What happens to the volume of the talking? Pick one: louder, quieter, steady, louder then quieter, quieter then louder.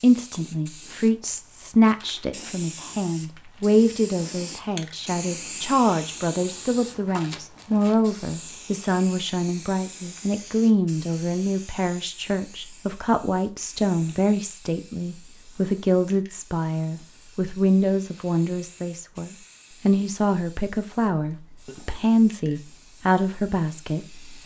steady.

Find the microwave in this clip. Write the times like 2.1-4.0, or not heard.
not heard.